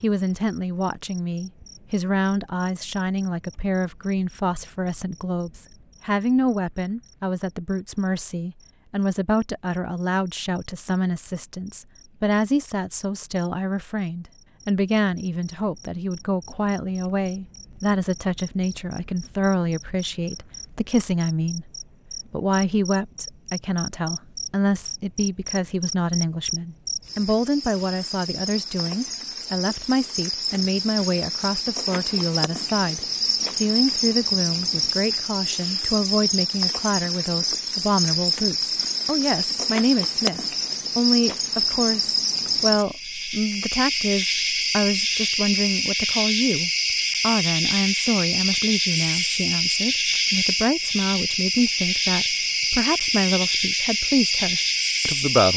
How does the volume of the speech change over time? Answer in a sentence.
The loudness of the speech stays about the same.